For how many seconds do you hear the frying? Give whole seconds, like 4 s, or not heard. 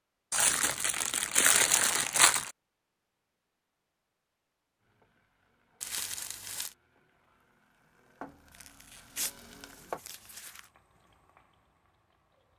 8 s.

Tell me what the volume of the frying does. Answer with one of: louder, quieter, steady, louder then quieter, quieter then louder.
louder then quieter.